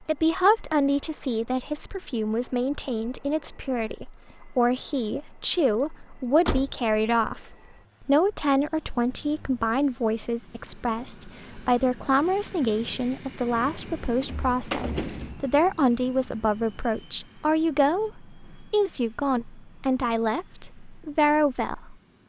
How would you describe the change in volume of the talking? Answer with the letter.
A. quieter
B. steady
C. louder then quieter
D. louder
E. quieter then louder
B.